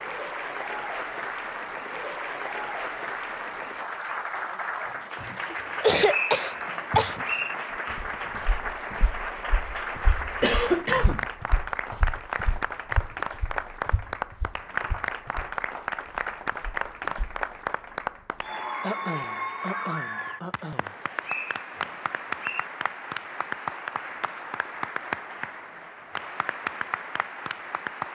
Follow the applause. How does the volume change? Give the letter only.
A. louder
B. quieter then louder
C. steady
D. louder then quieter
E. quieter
C.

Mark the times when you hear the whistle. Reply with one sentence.
You can hear the whistle from 5.7 to 7.5 s and from 21.2 to 22.6 s.